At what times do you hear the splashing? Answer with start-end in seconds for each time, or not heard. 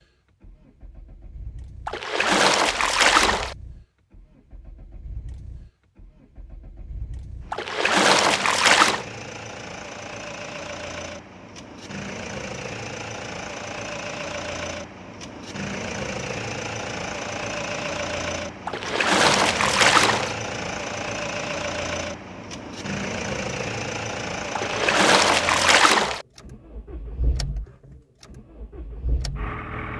1.9-3.5, 7.5-9.1, 18.6-20.4, 24.6-26.2.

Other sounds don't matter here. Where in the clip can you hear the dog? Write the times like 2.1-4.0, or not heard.
not heard.